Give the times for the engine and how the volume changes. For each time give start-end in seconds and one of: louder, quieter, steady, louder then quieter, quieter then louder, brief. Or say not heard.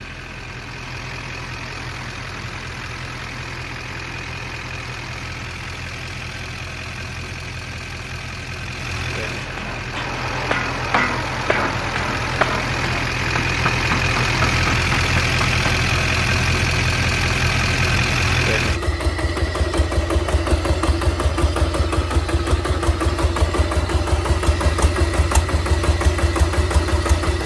0.0-27.4 louder.